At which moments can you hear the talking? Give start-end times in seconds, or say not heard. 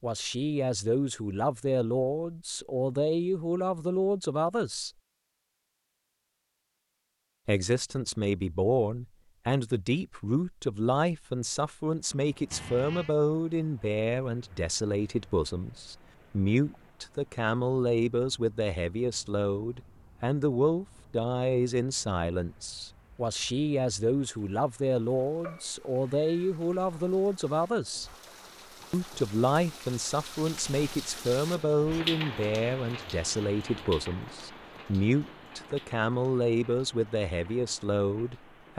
0.0-4.9, 7.5-28.1, 28.9-38.7.